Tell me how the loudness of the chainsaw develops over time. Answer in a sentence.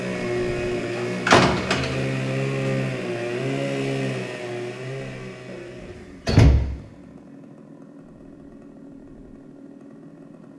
The volume of the chainsaw goes down.